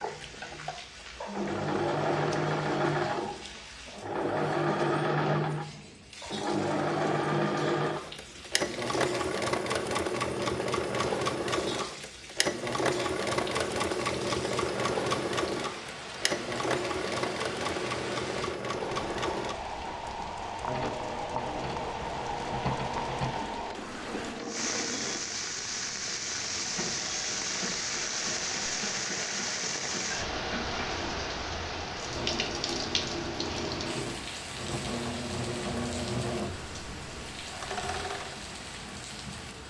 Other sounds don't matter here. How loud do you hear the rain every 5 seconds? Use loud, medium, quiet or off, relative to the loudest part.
quiet, quiet, medium, medium, loud, loud, loud, medium.